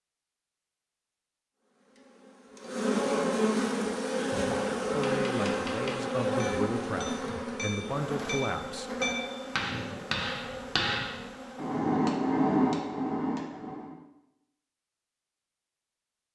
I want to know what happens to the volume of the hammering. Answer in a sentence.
The volume of the hammering goes up.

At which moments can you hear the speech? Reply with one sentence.
The speech can be heard from 4.9 to 8.9 s.